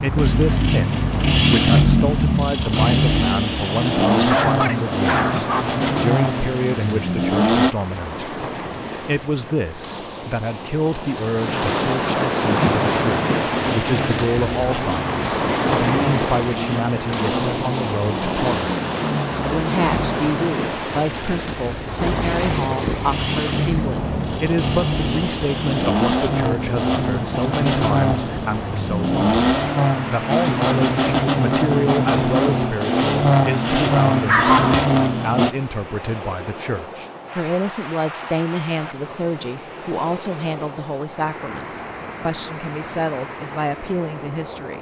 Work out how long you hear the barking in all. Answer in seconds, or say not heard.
2 s.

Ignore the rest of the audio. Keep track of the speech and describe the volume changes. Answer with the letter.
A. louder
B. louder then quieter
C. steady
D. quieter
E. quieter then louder
C.